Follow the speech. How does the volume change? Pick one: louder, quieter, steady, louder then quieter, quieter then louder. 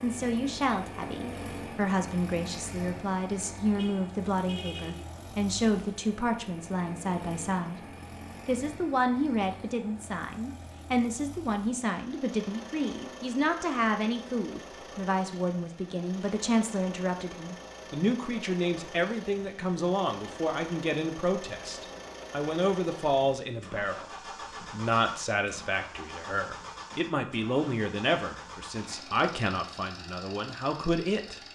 steady.